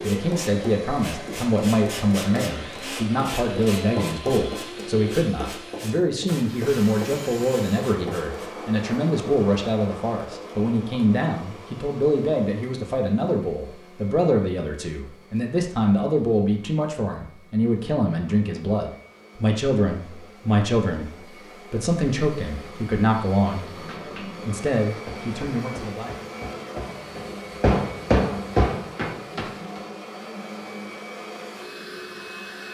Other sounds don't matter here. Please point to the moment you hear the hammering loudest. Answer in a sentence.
The loudest moment of the hammering is at 28 seconds.